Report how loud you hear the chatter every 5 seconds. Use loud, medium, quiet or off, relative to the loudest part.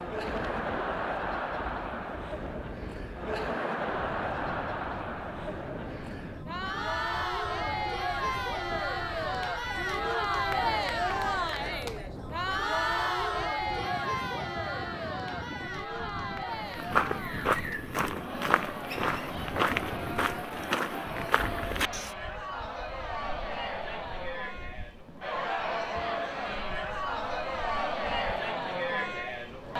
loud, loud, loud, medium, medium, loud.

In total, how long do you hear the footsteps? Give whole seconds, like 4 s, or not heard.
6 s.